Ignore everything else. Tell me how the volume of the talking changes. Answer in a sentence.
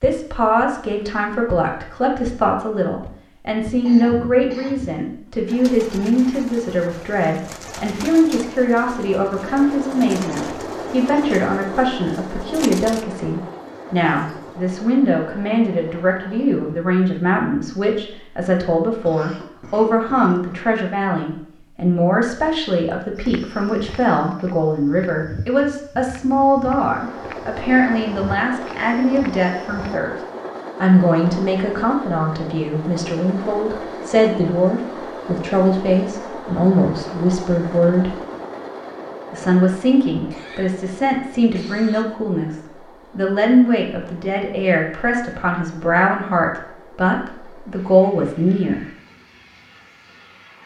The volume of the talking stays about the same.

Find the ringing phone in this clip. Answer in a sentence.
You can't hear the ringing phone here.